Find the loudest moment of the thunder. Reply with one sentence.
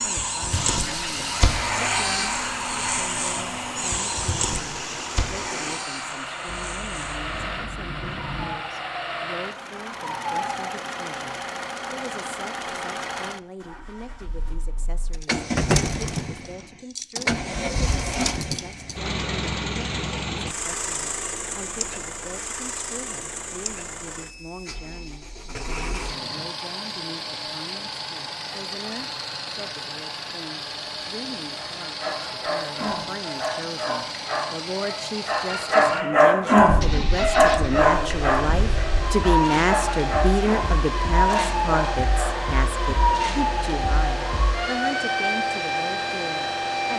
The loudest moment of the thunder is at 8 seconds.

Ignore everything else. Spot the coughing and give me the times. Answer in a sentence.
You can't hear the coughing here.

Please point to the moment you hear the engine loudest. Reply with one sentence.
The volume of the engine peaks at 16 seconds.